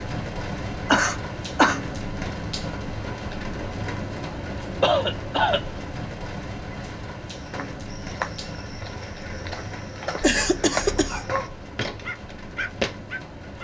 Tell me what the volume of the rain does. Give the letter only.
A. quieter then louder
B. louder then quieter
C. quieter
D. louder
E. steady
C.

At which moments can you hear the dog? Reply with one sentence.
You can hear the dog from 11.1 to 13.5 s.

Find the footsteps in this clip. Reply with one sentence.
The footsteps can be heard from 7.3 to 13.0 s.